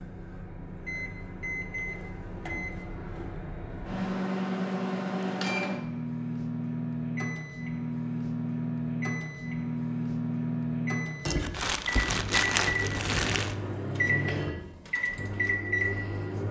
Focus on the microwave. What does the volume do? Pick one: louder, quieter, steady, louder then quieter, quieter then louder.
louder.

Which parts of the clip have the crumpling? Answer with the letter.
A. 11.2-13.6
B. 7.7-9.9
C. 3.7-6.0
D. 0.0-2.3
A.